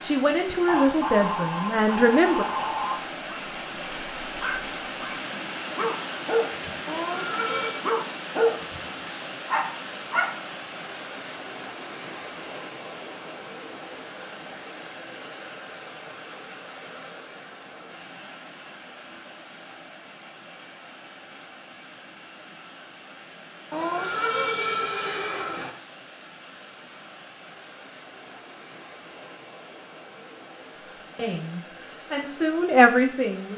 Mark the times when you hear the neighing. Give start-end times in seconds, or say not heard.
6.8-7.8, 23.7-25.8.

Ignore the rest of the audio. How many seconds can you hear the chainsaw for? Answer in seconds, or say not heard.
not heard.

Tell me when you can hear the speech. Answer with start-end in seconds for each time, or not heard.
0.0-2.5, 30.8-33.5.